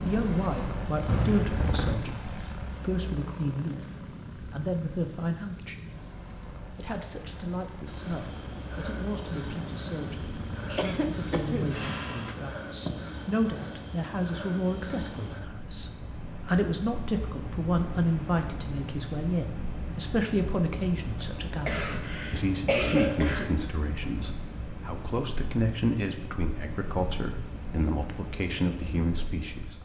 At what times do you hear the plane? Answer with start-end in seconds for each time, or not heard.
0.0-12.4.